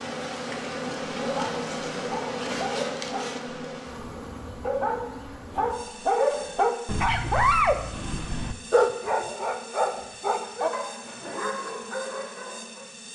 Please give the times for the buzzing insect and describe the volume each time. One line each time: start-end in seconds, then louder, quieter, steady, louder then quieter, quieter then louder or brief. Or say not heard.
0.0-13.0 quieter.